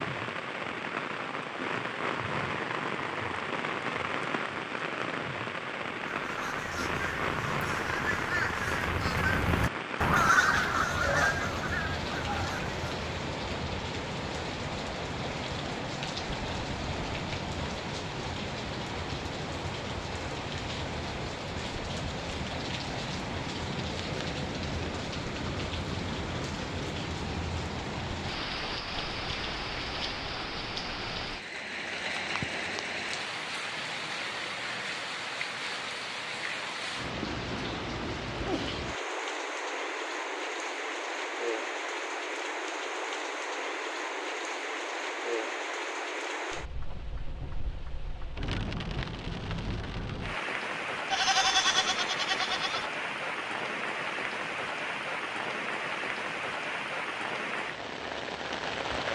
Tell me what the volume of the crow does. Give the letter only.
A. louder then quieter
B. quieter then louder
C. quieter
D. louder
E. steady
A.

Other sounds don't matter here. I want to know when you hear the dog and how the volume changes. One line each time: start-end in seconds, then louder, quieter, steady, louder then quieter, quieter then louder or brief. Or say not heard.
not heard.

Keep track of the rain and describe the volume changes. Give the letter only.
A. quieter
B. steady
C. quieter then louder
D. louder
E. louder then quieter
B.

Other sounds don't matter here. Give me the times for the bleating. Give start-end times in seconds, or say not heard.
51.1-52.9.